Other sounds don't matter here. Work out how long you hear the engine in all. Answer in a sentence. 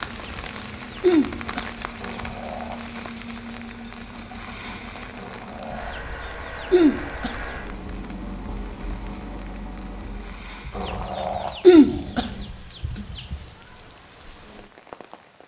The engine can be heard for 11 seconds in total.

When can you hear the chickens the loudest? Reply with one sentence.
The loudest moment of the chickens is at 12 seconds.